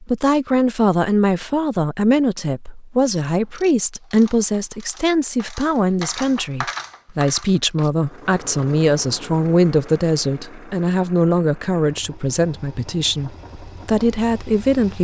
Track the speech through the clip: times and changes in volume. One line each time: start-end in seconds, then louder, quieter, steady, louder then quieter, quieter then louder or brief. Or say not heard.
0.0-15.0 steady.